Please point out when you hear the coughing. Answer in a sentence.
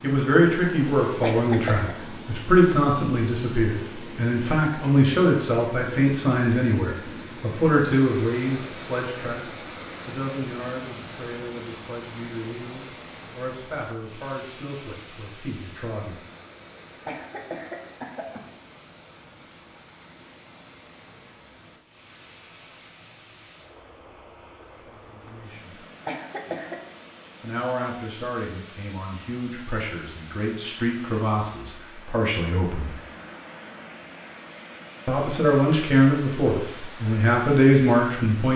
You can hear the coughing from 1.2 to 1.9 s, from 17.1 to 18.4 s and from 26.1 to 26.8 s.